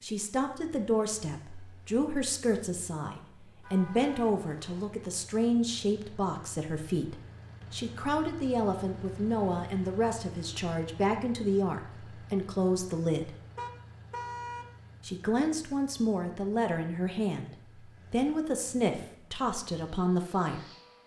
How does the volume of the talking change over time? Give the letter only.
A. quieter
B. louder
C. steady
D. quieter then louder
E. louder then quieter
C.